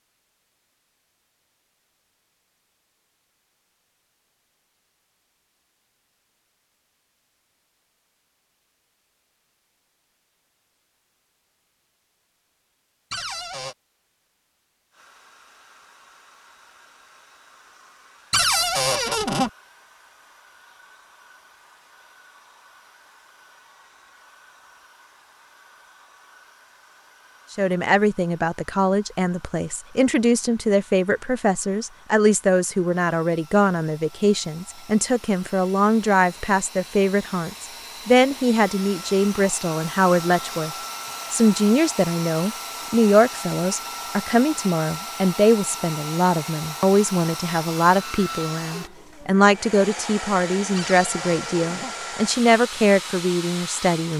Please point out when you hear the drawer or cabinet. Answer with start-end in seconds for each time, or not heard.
13.1-13.8, 18.3-19.5, 50.8-52.0.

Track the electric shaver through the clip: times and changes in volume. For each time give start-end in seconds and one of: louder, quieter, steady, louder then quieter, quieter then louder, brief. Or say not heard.
not heard.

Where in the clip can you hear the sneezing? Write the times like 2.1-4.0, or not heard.
not heard.